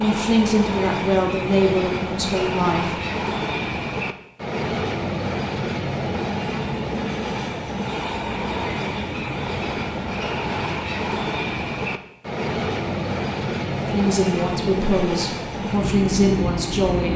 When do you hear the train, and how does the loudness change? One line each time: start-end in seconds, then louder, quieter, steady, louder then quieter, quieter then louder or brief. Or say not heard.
0.0-17.1 steady.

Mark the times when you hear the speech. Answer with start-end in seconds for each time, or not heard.
0.0-3.0, 13.7-17.1.